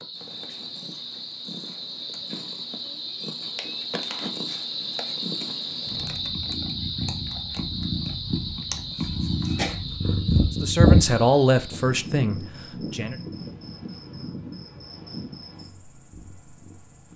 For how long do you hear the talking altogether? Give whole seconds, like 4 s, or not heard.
3 s.